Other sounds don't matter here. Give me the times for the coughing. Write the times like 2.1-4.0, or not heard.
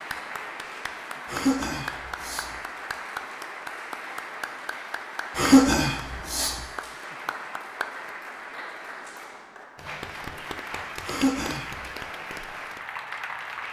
1.2-2.5, 5.3-6.6, 11.1-11.9.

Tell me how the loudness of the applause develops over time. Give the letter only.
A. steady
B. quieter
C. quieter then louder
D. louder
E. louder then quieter
A.